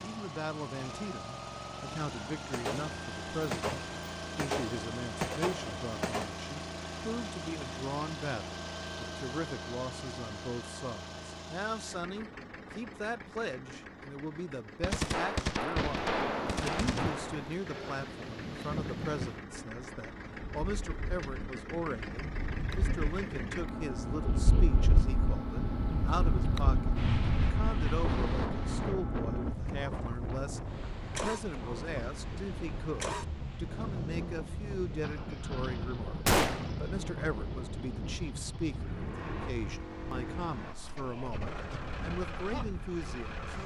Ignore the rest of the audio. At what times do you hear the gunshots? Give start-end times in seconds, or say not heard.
2.5-6.3, 14.8-17.6, 36.2-36.7.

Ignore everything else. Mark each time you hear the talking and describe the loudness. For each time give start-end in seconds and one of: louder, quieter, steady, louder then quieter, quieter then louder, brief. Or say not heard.
0.0-43.6 steady.